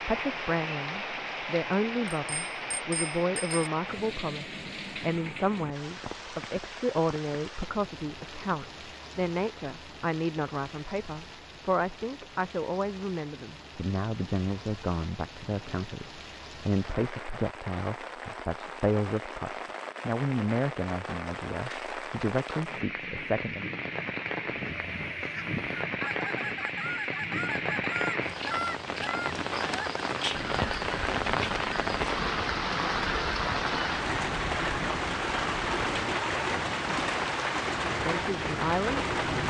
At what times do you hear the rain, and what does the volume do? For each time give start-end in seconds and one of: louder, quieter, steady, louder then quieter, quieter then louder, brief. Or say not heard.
0.0-39.4 quieter then louder.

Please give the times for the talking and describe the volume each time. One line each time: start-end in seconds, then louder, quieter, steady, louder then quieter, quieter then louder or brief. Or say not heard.
0.1-23.6 steady
37.9-39.4 brief.